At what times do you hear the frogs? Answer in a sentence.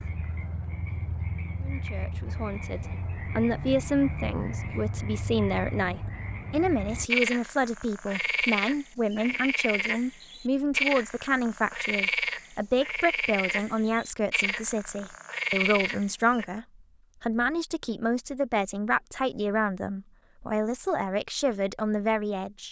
The frogs can be heard from 0.0 to 16.4 s.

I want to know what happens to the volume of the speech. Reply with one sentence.
The loudness of the speech stays about the same.